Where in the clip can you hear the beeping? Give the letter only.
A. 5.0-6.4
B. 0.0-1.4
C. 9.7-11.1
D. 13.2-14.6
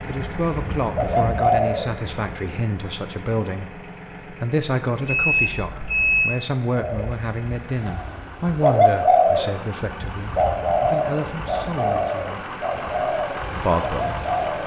A.